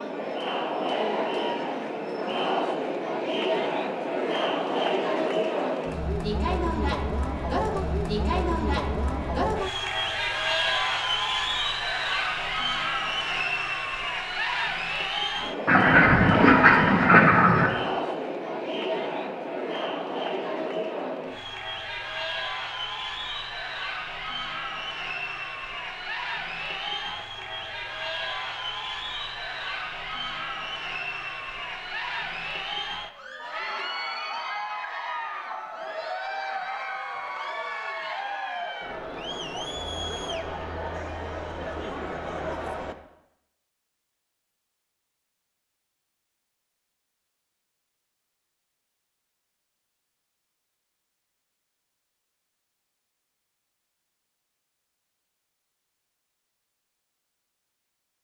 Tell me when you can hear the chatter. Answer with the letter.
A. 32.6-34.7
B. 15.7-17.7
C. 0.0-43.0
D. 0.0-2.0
C.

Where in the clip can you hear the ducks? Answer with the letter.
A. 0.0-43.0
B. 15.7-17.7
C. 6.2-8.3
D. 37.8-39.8
B.